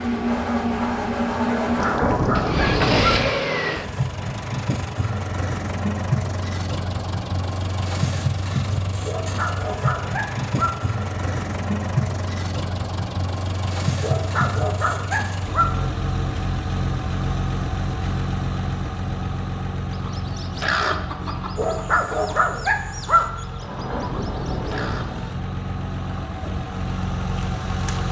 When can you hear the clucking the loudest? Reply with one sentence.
The volume of the clucking peaks at 21 seconds.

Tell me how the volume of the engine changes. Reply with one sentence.
The volume of the engine goes down.